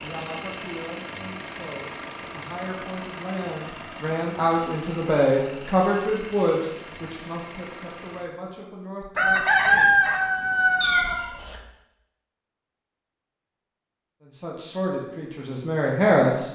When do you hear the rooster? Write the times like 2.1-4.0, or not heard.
9.2-11.2.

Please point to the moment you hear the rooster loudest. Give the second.
10 s.